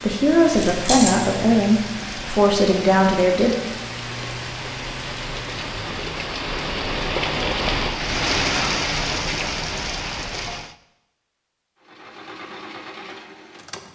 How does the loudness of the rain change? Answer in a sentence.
The loudness of the rain goes up.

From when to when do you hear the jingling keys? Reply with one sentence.
You can hear the jingling keys from 0.6 to 1.3 s.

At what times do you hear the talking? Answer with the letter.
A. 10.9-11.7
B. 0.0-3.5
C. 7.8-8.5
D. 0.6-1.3
B.